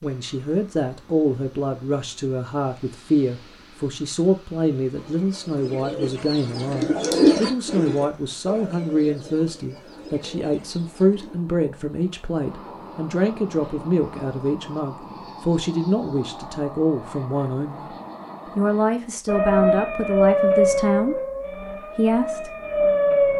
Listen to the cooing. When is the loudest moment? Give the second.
7 s.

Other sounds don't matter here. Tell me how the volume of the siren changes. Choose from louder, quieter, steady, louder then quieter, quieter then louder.
quieter then louder.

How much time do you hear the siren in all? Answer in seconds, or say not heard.
4 s.